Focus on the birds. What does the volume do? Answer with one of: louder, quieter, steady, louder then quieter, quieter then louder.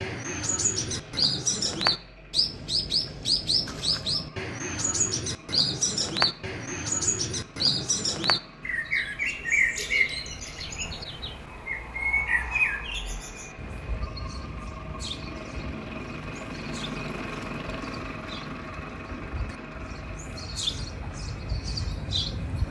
quieter then louder.